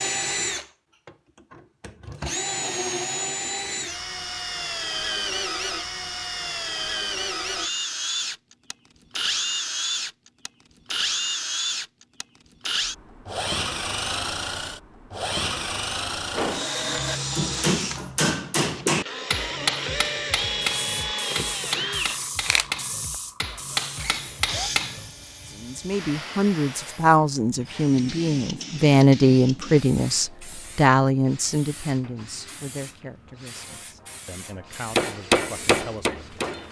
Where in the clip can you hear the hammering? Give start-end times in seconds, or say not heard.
16.3-25.1, 35.0-36.6.